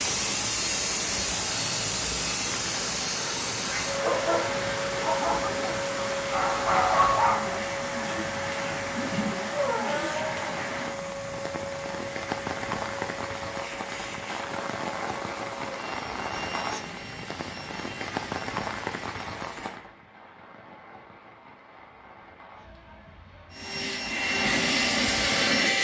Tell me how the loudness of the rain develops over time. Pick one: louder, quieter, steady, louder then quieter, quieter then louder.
quieter.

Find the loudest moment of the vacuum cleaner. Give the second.
25 s.